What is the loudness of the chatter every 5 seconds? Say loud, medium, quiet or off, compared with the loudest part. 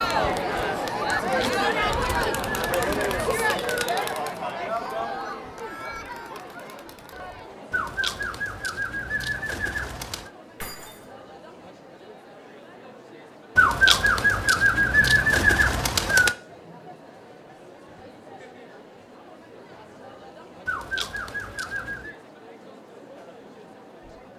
loud, quiet, quiet, quiet, quiet.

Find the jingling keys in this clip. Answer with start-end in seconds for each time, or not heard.
10.6-11.1.